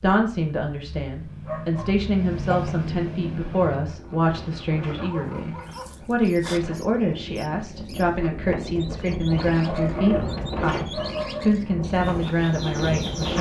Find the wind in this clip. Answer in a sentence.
The wind can be heard from 2.6 to 13.3 s.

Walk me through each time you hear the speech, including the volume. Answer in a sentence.
You can hear the speech from 0.0 to 13.3 s, at a steady volume.